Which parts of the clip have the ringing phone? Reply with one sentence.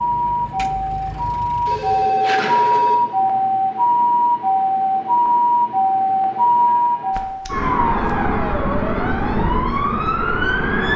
You can hear the ringing phone from 1.6 to 3.0 s and from 6.7 to 8.3 s.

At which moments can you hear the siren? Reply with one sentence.
The siren can be heard from 0.0 to 10.9 s.